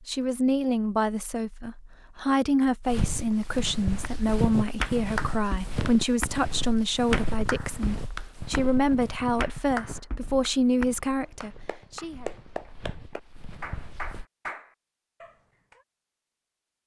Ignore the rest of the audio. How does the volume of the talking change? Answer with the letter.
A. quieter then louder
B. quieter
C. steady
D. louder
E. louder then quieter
C.